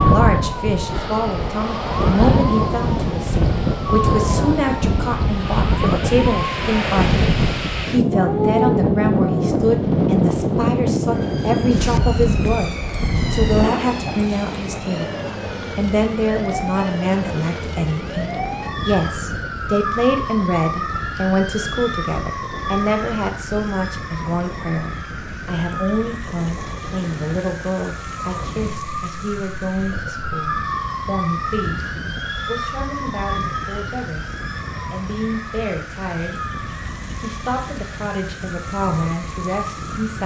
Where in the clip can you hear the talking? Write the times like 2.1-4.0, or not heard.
0.0-34.2, 34.9-36.5, 37.1-40.2.